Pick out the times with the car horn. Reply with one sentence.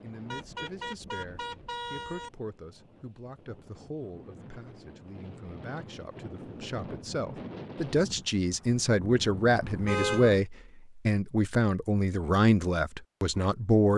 You can hear the car horn from 0.3 to 2.3 s and from 9.8 to 10.4 s.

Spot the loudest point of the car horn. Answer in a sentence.
The volume of the car horn peaks at 10 seconds.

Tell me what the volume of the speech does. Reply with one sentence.
The volume of the speech goes up.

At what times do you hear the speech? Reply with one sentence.
The speech can be heard from 0.0 to 13.9 s.